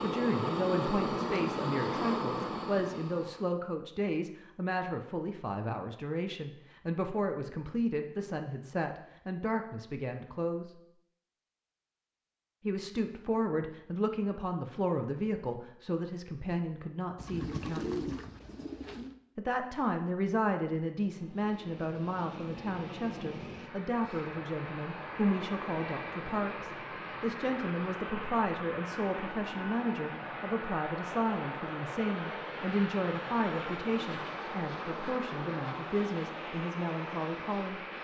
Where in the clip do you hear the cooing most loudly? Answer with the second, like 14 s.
18 s.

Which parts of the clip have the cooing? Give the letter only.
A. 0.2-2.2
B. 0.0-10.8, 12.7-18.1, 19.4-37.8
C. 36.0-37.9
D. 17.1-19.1
D.